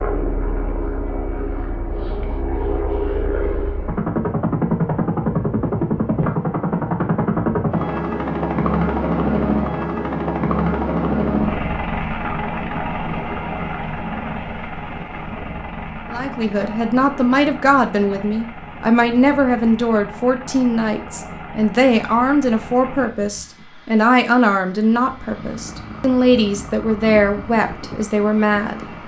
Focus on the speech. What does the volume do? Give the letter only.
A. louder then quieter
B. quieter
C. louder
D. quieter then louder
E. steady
E.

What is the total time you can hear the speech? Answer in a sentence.
You can hear the speech for 13 seconds altogether.